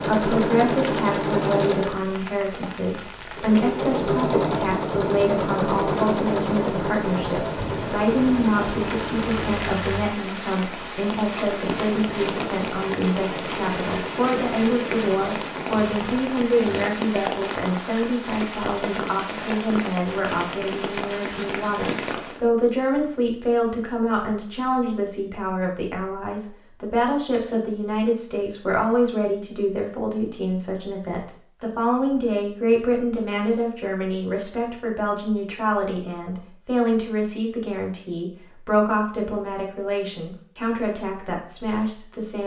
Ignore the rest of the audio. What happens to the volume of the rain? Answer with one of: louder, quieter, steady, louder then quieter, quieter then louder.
louder.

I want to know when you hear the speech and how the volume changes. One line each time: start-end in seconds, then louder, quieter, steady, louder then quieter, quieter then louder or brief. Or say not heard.
0.1-42.4 steady.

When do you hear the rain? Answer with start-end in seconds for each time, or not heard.
0.0-22.4.